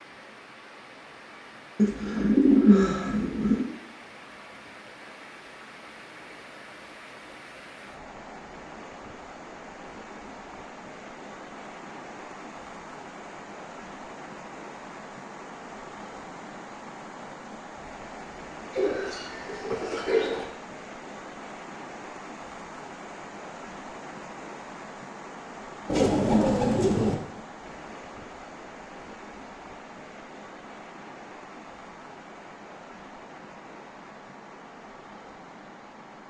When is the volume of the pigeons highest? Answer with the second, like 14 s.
3 s.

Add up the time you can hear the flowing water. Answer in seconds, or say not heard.
36 s.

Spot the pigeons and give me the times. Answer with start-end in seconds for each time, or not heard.
1.8-3.6, 18.7-20.4, 25.9-27.1.